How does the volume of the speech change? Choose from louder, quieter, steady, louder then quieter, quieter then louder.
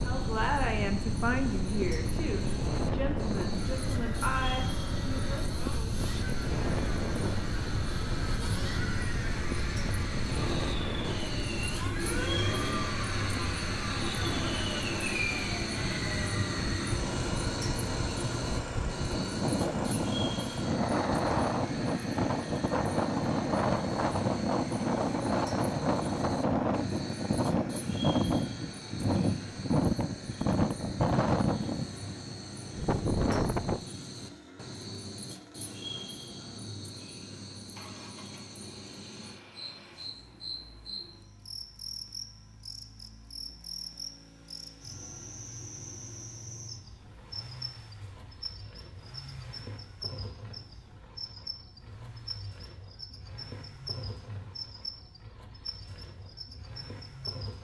quieter.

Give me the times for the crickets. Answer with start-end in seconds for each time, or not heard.
0.0-57.5.